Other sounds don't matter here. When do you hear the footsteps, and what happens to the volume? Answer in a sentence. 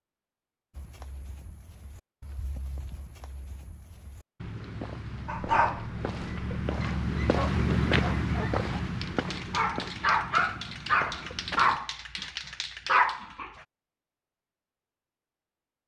The footsteps can be heard from 0.8 to 11.8 s, getting louder then quieter.